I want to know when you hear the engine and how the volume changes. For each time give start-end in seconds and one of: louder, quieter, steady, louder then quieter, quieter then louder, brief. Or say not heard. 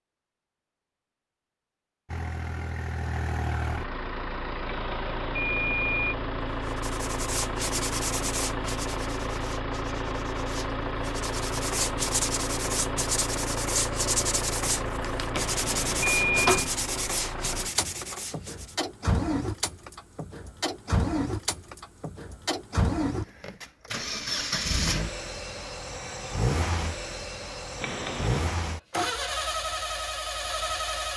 2.1-31.1 steady.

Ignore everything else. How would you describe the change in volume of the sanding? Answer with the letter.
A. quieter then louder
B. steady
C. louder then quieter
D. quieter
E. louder
A.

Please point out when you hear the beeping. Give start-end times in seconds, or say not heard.
4.7-6.2, 15.3-16.6, 27.8-28.5.